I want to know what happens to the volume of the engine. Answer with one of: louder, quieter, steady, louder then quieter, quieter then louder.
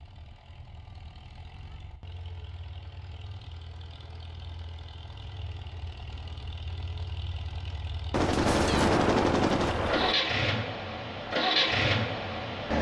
louder.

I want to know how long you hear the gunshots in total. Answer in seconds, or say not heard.
2 s.